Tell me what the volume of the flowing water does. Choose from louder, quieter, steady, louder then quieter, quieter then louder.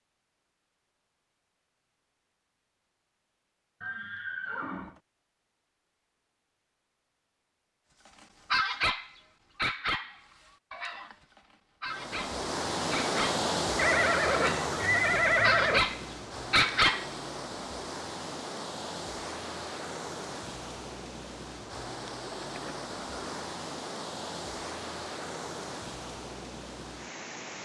quieter.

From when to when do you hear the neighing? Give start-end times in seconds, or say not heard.
3.8-5.0, 13.8-15.8, 22.3-23.5.